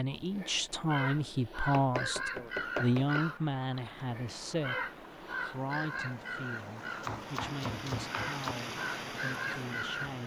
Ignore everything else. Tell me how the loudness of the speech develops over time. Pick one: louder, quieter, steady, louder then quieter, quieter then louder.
quieter.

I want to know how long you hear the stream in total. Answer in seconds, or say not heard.
8 s.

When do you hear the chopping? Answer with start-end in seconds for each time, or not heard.
1.7-3.2, 7.0-8.5.